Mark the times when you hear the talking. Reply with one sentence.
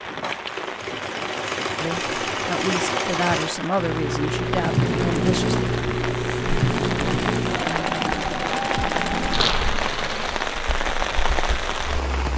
You can hear the talking from 1.8 to 5.6 s.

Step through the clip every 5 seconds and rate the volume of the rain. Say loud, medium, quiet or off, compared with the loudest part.
medium, loud, loud.